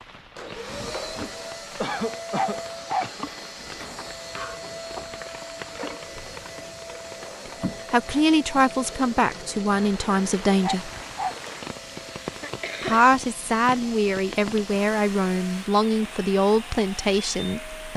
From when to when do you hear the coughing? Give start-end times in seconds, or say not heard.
1.8-3.2, 12.2-13.1.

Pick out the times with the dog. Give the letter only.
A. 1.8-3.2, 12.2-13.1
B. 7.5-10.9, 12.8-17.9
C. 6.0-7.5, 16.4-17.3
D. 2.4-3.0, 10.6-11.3
D.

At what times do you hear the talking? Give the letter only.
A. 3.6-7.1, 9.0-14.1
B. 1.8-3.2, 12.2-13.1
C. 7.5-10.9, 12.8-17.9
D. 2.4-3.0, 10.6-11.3
C.